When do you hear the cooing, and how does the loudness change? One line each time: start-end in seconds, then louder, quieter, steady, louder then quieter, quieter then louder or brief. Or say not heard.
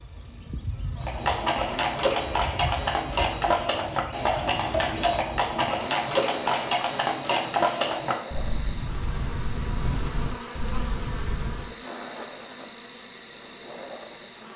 not heard.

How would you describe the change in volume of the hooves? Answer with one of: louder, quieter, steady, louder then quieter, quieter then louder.
quieter.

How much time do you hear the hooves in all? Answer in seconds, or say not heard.
11 s.